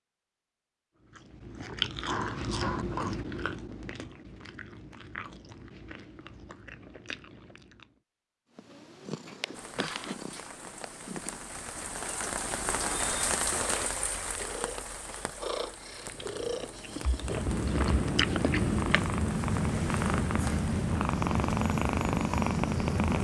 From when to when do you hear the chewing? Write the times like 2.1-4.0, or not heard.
1.0-7.9, 16.1-19.1.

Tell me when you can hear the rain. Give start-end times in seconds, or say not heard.
9.5-23.1.